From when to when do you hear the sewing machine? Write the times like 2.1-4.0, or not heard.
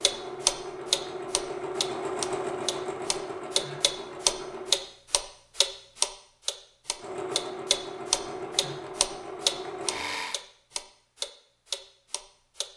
0.0-4.9, 7.0-10.4.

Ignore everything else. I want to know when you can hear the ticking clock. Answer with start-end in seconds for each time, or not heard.
0.0-12.7.